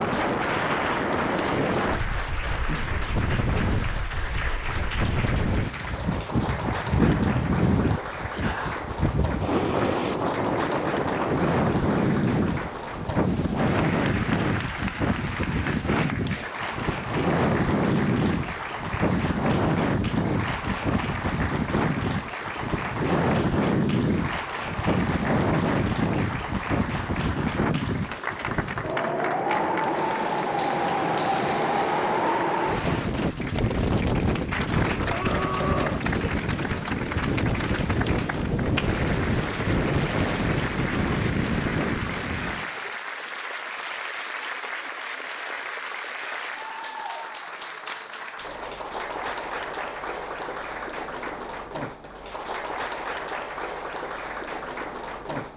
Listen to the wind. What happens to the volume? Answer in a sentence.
The volume of the wind stays about the same.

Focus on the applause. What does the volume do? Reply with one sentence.
The volume of the applause stays about the same.